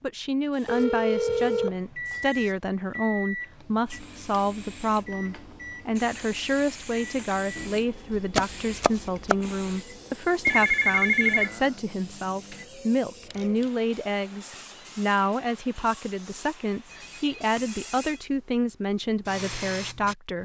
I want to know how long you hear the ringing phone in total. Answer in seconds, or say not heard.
4 s.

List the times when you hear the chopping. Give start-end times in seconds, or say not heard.
8.1-9.3.